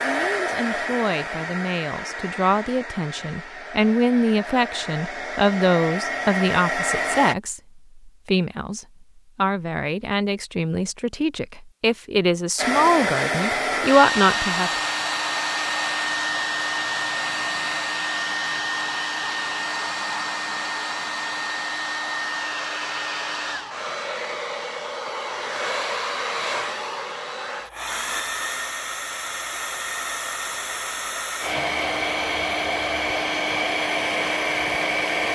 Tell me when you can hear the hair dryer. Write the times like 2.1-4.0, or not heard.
0.0-7.3, 12.6-35.2.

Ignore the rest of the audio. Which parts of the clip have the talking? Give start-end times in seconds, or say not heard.
0.0-14.7.